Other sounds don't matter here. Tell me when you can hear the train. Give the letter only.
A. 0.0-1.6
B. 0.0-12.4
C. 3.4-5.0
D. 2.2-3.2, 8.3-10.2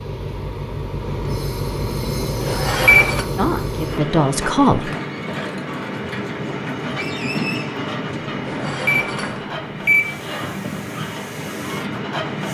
B.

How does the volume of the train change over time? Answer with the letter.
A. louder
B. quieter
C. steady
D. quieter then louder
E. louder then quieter
C.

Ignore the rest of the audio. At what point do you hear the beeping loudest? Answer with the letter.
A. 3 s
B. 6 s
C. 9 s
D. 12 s
A.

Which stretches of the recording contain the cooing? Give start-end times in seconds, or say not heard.
not heard.